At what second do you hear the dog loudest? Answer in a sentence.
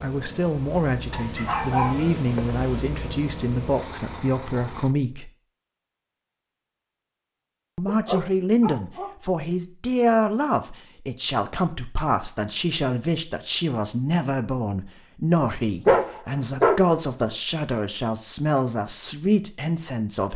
The loudest moment of the dog is at 16 seconds.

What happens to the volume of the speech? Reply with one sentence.
The loudness of the speech stays about the same.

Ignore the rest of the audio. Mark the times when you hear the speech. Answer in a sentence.
You can hear the speech from 0.0 to 5.3 s and from 7.8 to 20.3 s.